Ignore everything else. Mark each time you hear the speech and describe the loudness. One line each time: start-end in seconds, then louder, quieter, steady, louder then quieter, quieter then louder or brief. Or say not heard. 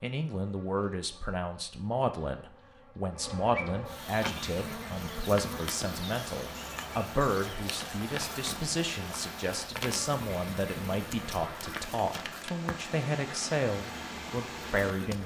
0.0-15.2 steady.